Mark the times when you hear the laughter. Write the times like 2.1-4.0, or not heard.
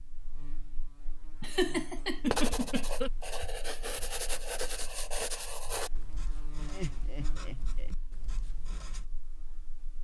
1.4-3.1, 6.6-8.0.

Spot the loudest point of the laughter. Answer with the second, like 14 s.
2 s.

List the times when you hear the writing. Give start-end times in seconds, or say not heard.
2.2-9.1.